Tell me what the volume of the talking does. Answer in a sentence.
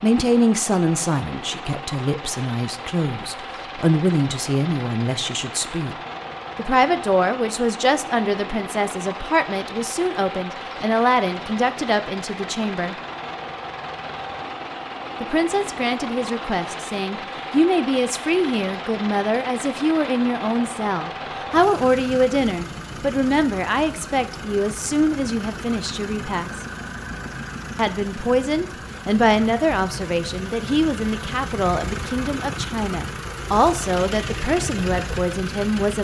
The loudness of the talking stays about the same.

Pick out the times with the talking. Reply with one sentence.
The talking can be heard from 0.0 to 6.0 s, from 6.5 to 12.9 s, from 15.2 to 26.6 s and from 27.8 to 35.9 s.